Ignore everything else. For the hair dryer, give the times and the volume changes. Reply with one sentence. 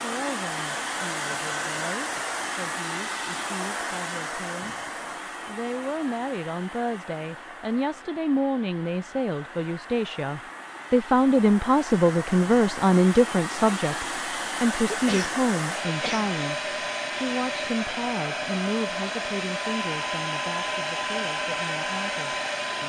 You can hear the hair dryer from 0.0 to 22.8 s, getting quieter then louder.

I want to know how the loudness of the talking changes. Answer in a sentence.
The loudness of the talking goes up, then down.